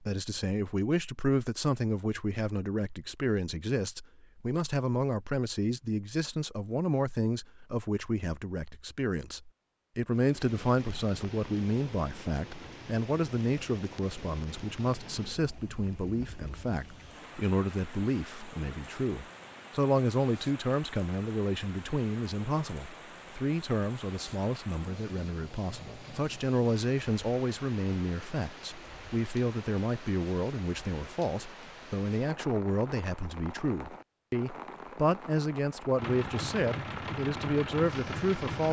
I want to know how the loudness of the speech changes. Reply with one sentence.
The loudness of the speech stays about the same.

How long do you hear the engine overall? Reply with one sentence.
The engine can be heard for 3 seconds in total.